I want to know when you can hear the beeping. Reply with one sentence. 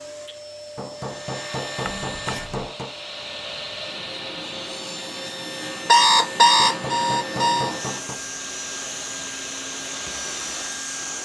The beeping can be heard from 1.9 to 2.7 s and from 5.8 to 7.7 s.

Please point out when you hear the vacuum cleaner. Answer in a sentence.
The vacuum cleaner can be heard from 0.0 to 11.2 s.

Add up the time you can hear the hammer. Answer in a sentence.
The hammer can be heard for 4 seconds in total.